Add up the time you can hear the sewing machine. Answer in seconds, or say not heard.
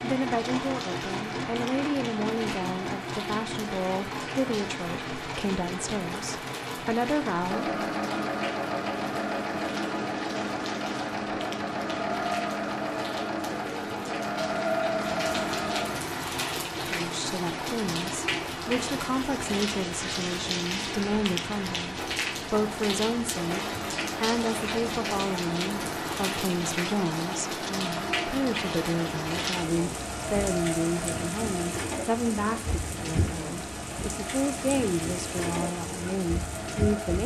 37 s.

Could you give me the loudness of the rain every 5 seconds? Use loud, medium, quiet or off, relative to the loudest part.
medium, medium, medium, loud, loud, loud, loud, loud.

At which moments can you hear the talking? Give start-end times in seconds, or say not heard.
0.0-7.7, 16.9-23.6, 24.2-37.2.